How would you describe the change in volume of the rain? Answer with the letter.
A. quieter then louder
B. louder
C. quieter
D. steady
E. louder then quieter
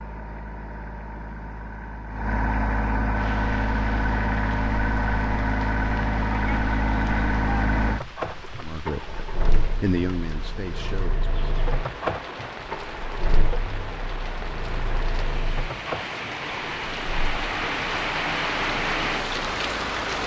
B.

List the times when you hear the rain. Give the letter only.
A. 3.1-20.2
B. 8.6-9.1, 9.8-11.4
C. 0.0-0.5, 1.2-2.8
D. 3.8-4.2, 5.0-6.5
A.